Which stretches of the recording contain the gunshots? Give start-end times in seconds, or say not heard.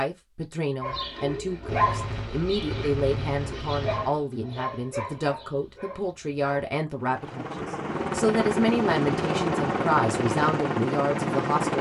1.6-4.2.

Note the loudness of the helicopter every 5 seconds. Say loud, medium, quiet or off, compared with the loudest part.
off, loud, loud.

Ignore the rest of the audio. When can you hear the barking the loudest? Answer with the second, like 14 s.
2 s.